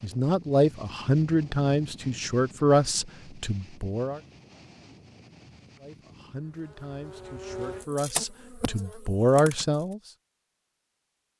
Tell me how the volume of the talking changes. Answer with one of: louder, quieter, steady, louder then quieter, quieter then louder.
quieter then louder.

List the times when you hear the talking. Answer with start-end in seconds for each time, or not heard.
0.0-4.2, 5.8-10.0.